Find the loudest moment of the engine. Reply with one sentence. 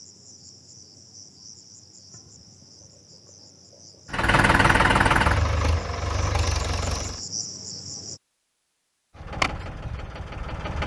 The volume of the engine peaks at 5 seconds.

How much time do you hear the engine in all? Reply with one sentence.
You can hear the engine for 5 seconds altogether.